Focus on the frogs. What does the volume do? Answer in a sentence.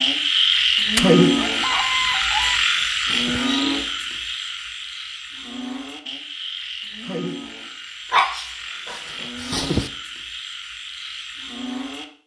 The volume of the frogs goes down.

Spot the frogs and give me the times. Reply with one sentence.
You can hear the frogs from 0.0 to 12.1 s.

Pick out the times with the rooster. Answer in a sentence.
The rooster can be heard from 0.9 to 2.6 s.